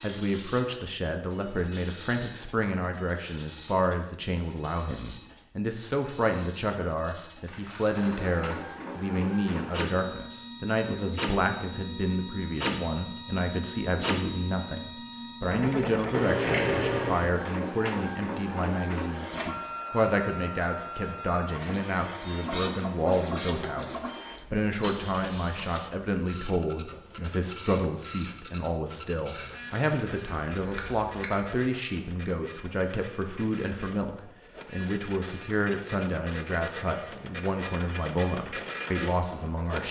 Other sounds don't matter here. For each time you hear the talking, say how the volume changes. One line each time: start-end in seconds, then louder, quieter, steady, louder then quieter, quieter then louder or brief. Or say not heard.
0.0-39.8 steady.